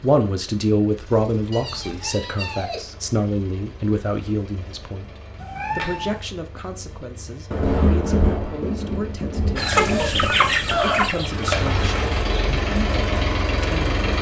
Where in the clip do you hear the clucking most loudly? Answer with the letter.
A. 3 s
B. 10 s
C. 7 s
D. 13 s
B.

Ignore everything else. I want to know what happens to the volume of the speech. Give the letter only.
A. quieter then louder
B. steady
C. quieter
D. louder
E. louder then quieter
C.